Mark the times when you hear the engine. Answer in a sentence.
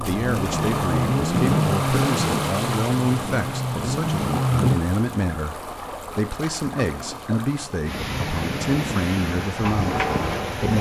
The engine can be heard from 0.1 to 4.8 s and from 8.0 to 10.7 s.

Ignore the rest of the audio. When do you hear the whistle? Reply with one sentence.
The whistle can't be heard in this clip.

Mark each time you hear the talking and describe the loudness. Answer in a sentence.
You can hear the talking from 0.0 to 10.7 s, at a steady volume.